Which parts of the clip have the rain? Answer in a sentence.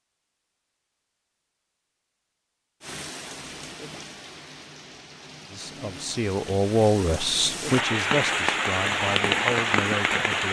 The rain can be heard from 2.8 to 10.4 s.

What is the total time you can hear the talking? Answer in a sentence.
You can hear the talking for 5 seconds altogether.